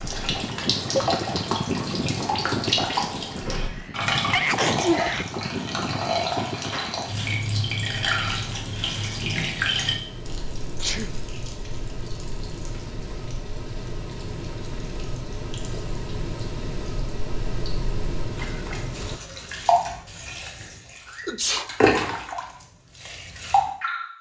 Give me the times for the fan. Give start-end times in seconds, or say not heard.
0.0-19.2.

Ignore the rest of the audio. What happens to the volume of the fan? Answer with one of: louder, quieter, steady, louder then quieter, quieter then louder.
quieter then louder.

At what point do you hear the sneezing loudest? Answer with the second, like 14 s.
5 s.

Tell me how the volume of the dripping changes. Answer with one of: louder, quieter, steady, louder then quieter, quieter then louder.
quieter then louder.